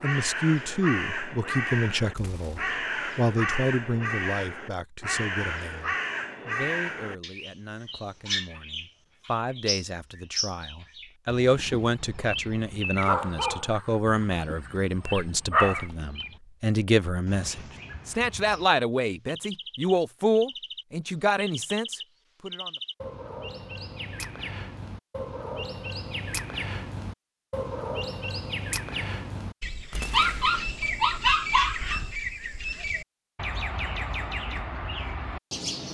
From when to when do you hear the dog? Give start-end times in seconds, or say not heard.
13.1-13.8, 14.7-15.8, 30.1-32.1.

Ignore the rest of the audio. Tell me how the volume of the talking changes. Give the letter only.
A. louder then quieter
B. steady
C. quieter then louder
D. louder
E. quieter
C.